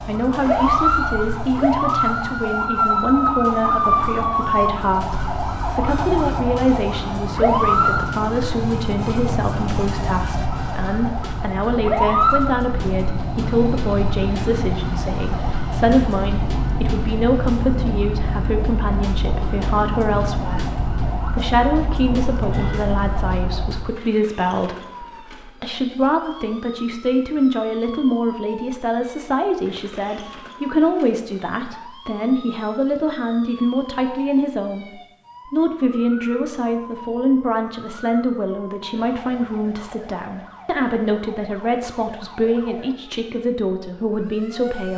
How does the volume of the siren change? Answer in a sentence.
The volume of the siren goes down.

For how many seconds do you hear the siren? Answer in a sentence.
The siren can be heard for 45 seconds in total.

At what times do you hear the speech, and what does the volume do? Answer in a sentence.
You can hear the speech from 0.1 to 44.9 s, at a steady volume.